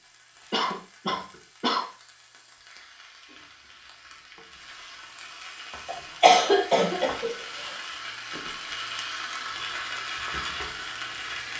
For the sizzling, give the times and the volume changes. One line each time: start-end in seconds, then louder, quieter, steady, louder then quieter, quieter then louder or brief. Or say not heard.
0.0-11.5 louder.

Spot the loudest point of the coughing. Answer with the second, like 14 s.
6 s.